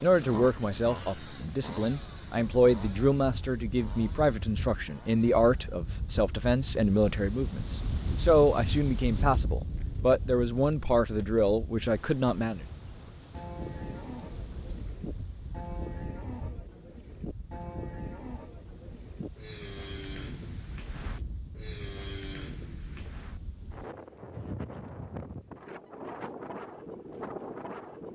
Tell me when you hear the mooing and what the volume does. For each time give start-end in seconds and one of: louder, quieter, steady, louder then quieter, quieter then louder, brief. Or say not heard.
12.9-23.4 steady.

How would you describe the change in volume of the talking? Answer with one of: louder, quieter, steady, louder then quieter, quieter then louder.
steady.